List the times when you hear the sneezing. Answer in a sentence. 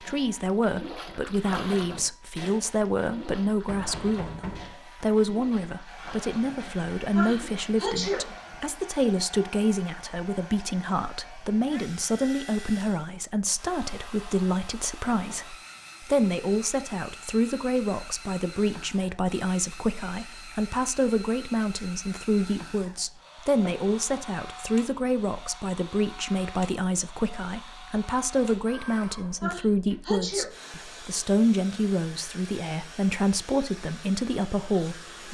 The sneezing can be heard from 7.2 to 8.2 s and from 29.4 to 30.5 s.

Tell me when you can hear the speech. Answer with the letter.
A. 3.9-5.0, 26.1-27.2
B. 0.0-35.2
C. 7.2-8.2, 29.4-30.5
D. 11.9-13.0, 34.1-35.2
B.